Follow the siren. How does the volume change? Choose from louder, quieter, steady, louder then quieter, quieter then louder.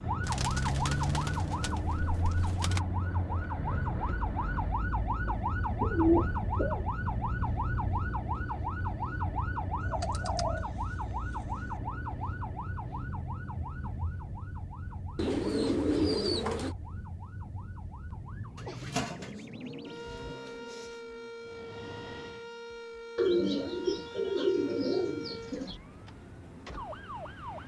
quieter.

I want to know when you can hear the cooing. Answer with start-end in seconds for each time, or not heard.
0.2-2.8, 5.2-6.8, 9.8-11.8, 15.2-16.8, 18.6-20.9, 23.1-25.8.